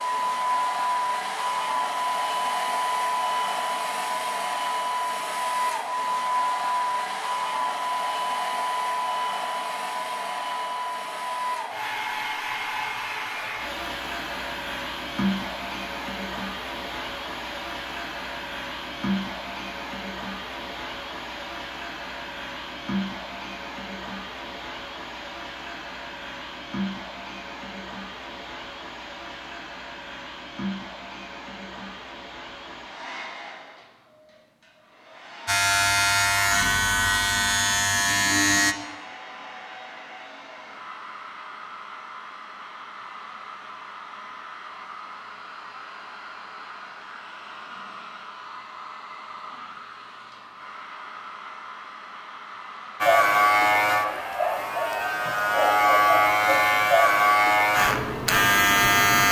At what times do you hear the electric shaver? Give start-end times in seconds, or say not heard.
35.5-38.8, 53.0-59.2.